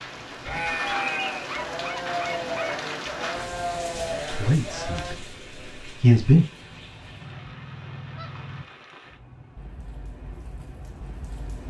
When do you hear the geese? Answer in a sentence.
The geese can be heard from 1.4 to 2.8 s and from 6.6 to 8.7 s.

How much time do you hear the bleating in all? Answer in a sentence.
The bleating can be heard for 5 seconds in total.